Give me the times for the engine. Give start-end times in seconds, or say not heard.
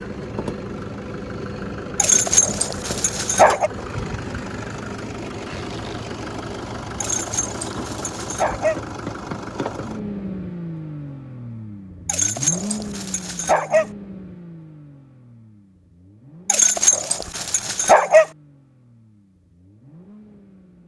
0.0-20.8.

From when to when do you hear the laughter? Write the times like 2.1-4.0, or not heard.
not heard.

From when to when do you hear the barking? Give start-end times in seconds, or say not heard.
1.9-3.7, 7.0-8.8, 12.1-13.8, 16.4-18.2.